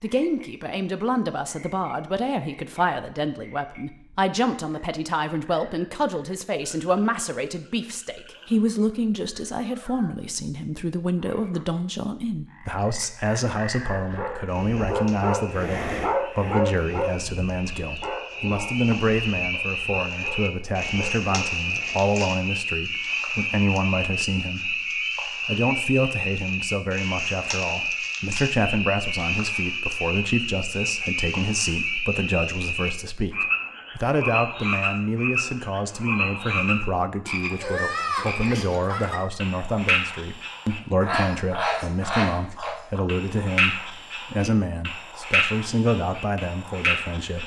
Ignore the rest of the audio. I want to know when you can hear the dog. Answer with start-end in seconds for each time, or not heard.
13.9-22.1.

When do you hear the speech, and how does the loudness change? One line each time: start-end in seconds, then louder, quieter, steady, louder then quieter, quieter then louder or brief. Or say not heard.
0.0-47.4 steady.